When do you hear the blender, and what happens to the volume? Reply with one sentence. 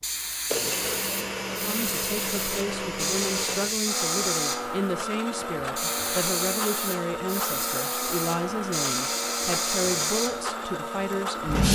You can hear the blender from 0.0 to 11.7 s, at a steady volume.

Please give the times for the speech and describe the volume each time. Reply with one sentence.
The speech can be heard from 1.6 to 11.7 s, at a steady volume.